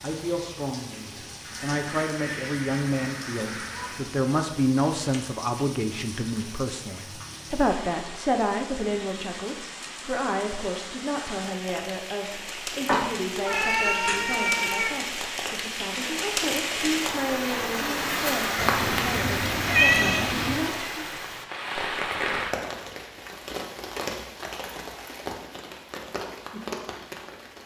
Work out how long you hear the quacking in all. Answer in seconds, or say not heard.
3 s.